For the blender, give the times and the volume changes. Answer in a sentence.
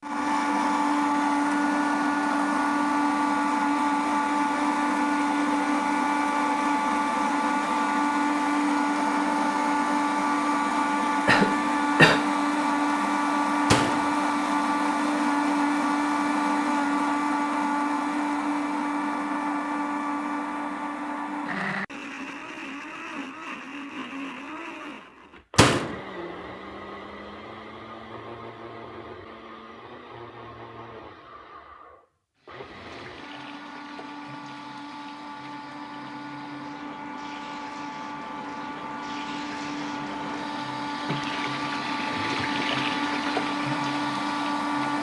You can hear the blender from 0.0 to 44.9 s, getting quieter then louder.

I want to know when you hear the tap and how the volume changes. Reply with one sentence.
The tap can be heard from 32.4 to 44.9 s, getting louder.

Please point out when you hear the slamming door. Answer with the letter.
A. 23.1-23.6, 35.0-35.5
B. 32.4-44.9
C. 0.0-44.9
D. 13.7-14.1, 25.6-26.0
D.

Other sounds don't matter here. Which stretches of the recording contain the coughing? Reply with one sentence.
You can hear the coughing from 11.2 to 12.2 s.